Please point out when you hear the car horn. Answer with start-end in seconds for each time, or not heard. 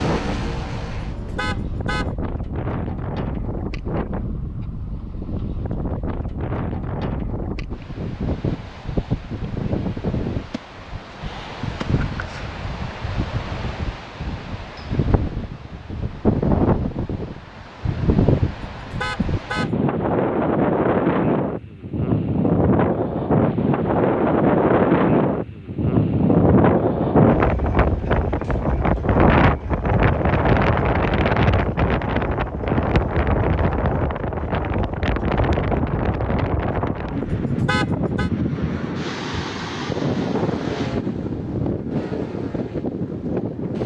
1.1-2.1, 18.5-19.8, 37.2-38.3.